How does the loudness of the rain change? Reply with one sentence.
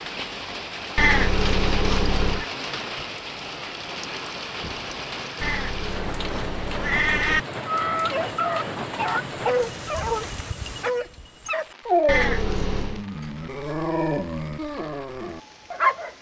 The loudness of the rain goes down.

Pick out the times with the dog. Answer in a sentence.
You can hear the dog from 7.7 to 16.1 s.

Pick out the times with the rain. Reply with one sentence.
You can hear the rain from 0.0 to 16.1 s.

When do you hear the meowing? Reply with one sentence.
The meowing can be heard from 0.9 to 2.5 s, from 5.4 to 7.4 s and from 12.1 to 13.1 s.